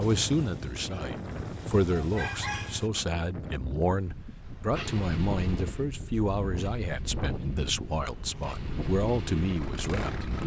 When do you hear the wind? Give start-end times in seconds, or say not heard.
0.0-10.4.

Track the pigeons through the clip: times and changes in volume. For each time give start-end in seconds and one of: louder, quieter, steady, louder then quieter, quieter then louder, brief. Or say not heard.
not heard.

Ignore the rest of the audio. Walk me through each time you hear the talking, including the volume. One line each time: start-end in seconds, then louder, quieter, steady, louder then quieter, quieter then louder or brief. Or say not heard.
0.0-10.4 steady.